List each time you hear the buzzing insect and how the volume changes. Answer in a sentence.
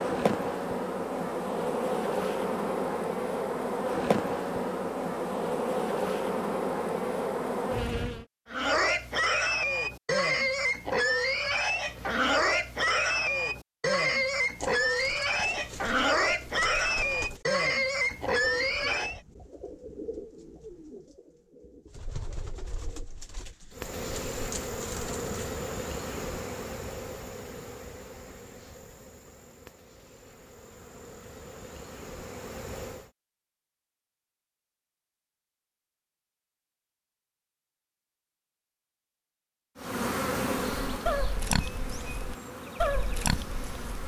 The buzzing insect can be heard from 0.0 to 8.2 s, at a steady volume; from 23.7 to 33.1 s, getting quieter then louder; and from 39.8 to 44.0 s, getting quieter.